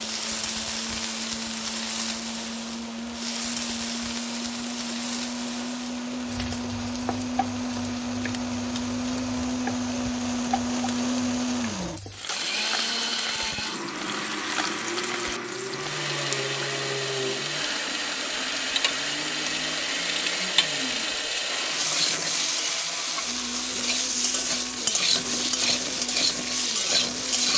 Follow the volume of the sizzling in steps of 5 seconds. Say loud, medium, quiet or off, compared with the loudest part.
medium, quiet, medium, medium, loud, loud.